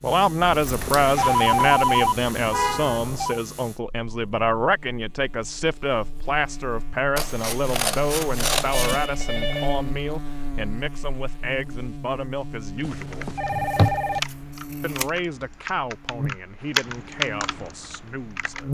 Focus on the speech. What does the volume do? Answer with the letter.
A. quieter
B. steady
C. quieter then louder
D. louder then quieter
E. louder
A.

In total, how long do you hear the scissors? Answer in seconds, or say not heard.
4 s.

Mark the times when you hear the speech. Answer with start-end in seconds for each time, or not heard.
0.0-13.3, 14.8-18.6.